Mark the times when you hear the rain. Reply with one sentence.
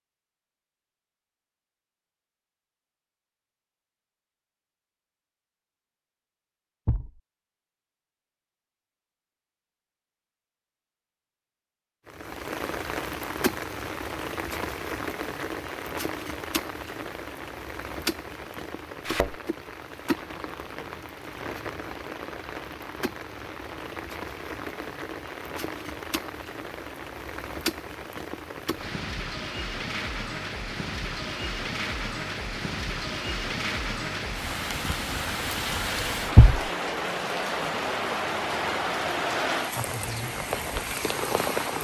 The rain can be heard from 12.1 to 41.7 s.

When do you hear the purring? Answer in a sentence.
You can't hear the purring here.